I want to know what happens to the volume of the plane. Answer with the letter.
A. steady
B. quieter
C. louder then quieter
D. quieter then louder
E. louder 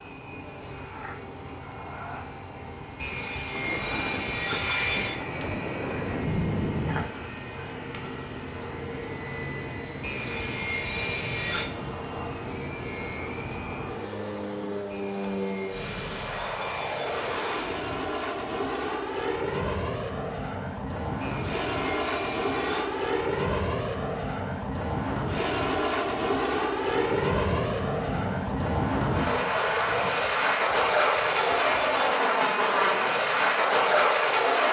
E.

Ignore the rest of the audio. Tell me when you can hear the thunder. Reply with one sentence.
You can hear the thunder from 3.5 to 7.1 s and from 26.9 to 30.2 s.